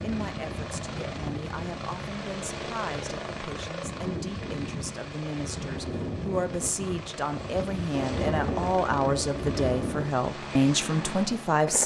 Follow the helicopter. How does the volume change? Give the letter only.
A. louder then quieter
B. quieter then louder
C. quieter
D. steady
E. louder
D.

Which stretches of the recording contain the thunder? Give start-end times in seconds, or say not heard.
7.9-9.9.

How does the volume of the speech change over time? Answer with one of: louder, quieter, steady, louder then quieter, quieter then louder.
louder.